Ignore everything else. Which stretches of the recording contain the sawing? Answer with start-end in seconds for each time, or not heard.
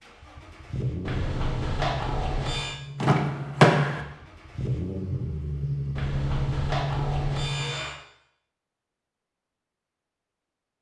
1.1-2.8, 6.0-8.0.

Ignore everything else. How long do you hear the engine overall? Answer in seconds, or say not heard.
8 s.